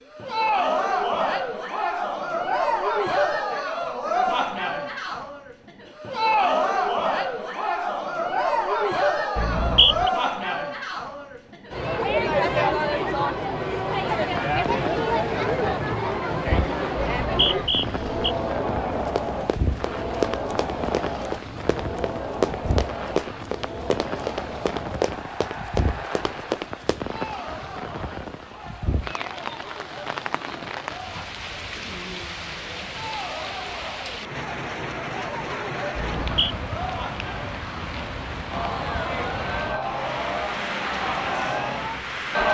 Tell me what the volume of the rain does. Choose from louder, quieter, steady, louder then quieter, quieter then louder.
steady.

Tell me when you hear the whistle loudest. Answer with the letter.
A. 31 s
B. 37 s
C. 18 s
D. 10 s
D.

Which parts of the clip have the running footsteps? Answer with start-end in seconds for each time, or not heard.
18.9-27.1.